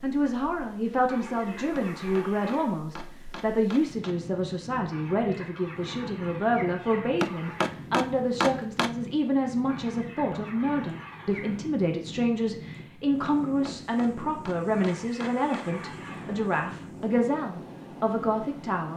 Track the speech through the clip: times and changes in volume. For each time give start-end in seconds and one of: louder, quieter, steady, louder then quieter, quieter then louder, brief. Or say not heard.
0.0-18.9 steady.